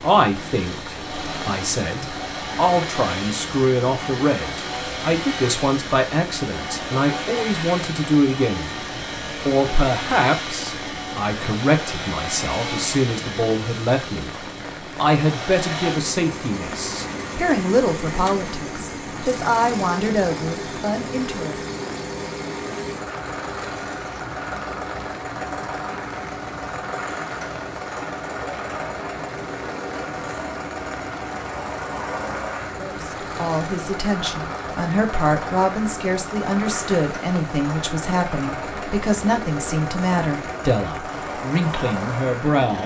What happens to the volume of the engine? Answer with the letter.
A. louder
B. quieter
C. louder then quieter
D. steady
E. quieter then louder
D.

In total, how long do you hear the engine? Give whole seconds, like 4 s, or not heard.
43 s.